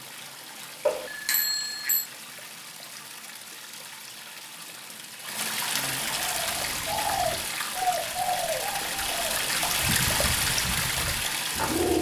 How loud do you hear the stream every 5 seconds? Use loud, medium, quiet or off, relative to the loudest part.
quiet, loud, loud.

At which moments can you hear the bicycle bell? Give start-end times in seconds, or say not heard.
0.8-2.1.